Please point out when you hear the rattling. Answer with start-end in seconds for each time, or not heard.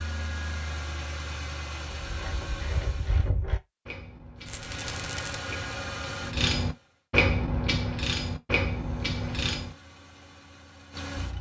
4.5-5.4.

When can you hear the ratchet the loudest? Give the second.
7 s.